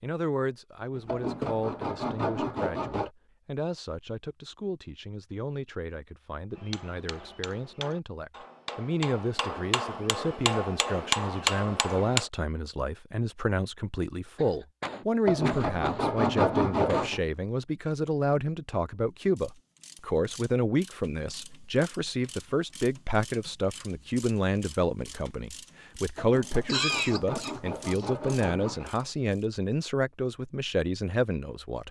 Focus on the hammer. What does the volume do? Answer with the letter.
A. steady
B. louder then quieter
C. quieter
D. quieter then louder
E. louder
E.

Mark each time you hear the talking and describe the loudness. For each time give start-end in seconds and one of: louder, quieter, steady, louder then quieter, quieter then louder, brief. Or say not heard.
0.0-31.8 louder.